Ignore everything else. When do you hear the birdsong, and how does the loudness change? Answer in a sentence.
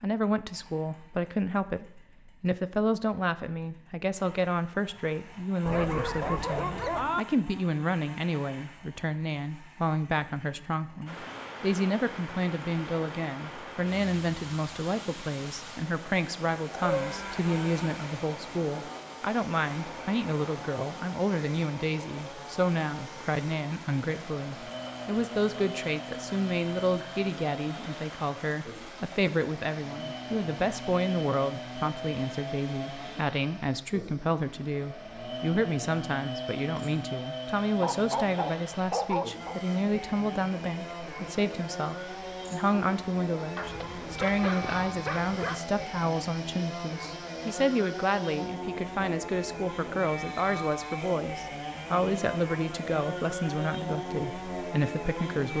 The birdsong can't be heard in this clip.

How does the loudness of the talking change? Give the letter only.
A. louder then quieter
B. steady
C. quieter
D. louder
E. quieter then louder
B.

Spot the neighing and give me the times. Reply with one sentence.
The neighing can't be heard in this clip.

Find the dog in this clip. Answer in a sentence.
The dog can be heard from 5.7 to 7.2 s, from 16.7 to 17.4 s, from 37.8 to 39.6 s and from 43.5 to 45.6 s.